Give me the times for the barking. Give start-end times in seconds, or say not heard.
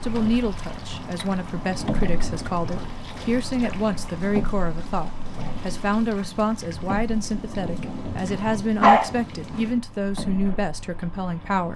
8.3-9.7.